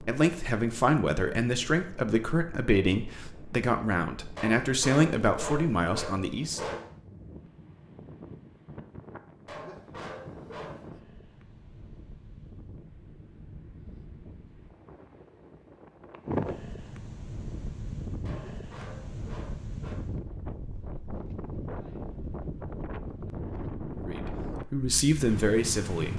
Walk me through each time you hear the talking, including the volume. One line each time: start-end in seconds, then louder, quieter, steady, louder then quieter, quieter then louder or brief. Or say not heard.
0.0-6.7 steady
23.9-26.1 brief.